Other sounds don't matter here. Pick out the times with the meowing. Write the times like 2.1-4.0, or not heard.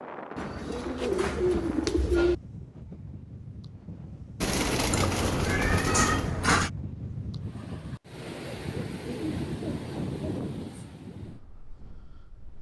4.8-6.7.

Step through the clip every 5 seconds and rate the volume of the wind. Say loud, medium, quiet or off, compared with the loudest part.
medium, loud, loud.